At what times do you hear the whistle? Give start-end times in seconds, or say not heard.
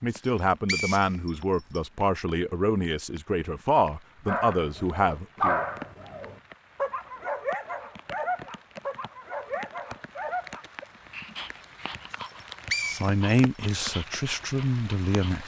0.1-1.8, 12.2-13.3.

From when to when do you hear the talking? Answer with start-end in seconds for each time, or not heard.
0.0-5.7, 13.0-15.4.